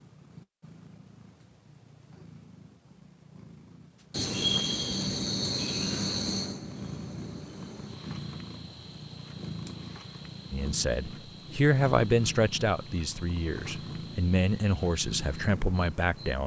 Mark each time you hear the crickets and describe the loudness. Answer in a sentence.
You can hear the crickets from 4.1 to 16.4 s, getting quieter.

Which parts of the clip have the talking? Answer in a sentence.
The talking can be heard from 10.5 to 16.4 s.